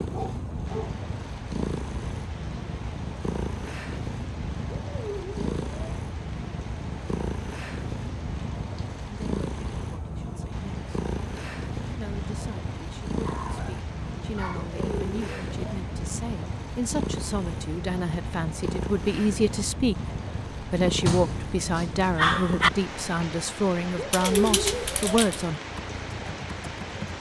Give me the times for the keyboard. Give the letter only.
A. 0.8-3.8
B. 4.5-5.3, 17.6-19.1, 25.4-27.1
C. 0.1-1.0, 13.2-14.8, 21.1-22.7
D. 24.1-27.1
D.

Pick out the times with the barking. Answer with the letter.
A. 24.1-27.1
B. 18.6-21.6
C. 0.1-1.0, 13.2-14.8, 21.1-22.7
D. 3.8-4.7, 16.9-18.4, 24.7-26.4
C.